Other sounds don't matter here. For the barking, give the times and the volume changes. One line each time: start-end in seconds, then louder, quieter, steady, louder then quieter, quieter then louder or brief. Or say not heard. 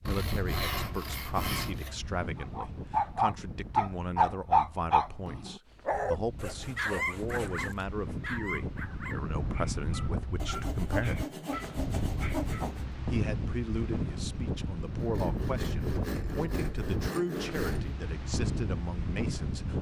2.4-12.7 quieter.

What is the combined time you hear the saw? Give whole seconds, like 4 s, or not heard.
9 s.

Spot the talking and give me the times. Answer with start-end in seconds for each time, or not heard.
0.0-11.2, 13.1-19.7.